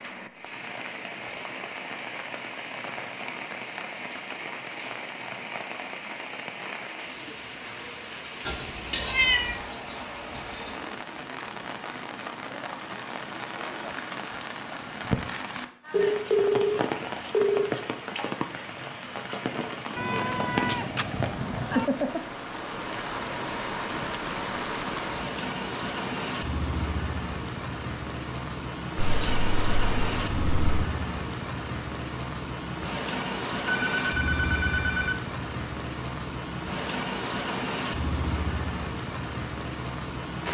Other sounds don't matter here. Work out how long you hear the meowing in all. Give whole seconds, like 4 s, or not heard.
5 s.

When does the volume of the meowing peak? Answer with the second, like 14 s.
9 s.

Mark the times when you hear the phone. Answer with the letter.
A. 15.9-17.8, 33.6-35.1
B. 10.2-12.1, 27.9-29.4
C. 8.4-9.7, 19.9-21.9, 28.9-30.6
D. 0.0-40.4
A.